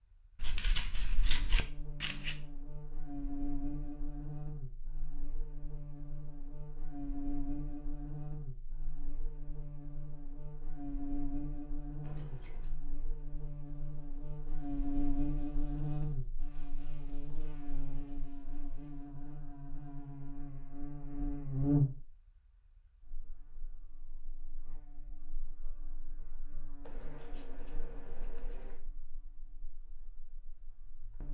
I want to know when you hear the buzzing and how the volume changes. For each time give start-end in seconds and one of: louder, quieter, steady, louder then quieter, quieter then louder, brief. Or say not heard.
0.0-31.2 louder then quieter.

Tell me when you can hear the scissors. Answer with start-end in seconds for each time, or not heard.
0.3-2.4, 12.0-12.7, 26.9-28.8.